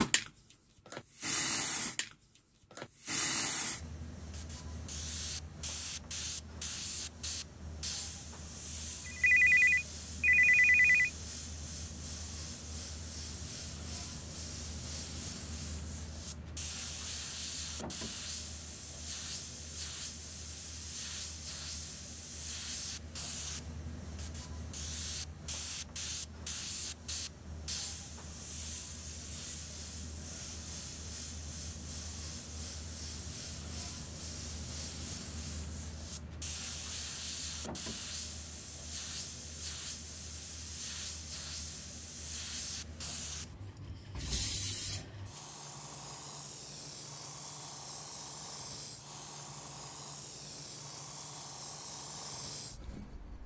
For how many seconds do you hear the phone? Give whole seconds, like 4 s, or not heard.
2 s.